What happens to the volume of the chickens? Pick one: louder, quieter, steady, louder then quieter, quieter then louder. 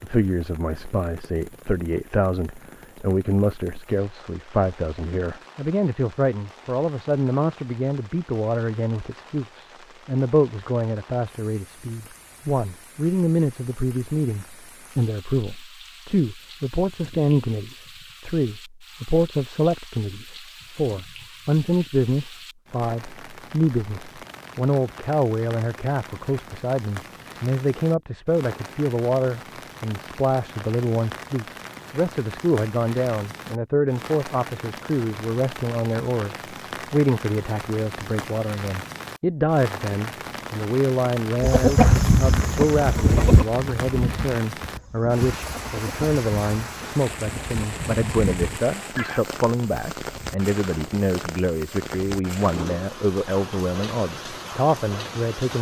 quieter then louder.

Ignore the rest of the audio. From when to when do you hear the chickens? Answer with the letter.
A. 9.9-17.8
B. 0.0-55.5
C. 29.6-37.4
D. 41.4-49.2
D.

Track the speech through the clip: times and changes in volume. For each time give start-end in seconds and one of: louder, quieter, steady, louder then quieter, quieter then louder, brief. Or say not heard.
0.0-55.5 steady.